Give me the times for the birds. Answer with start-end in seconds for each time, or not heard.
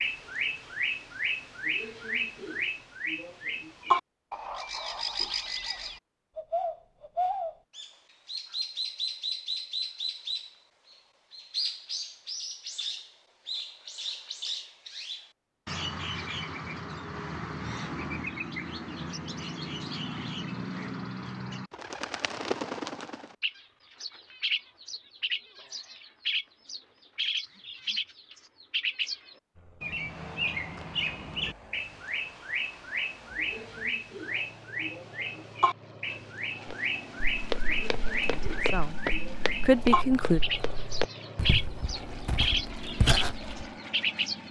0.0-44.4.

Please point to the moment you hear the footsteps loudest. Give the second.
43 s.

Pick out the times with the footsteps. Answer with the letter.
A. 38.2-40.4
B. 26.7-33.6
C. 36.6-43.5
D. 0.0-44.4
C.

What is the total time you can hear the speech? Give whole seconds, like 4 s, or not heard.
2 s.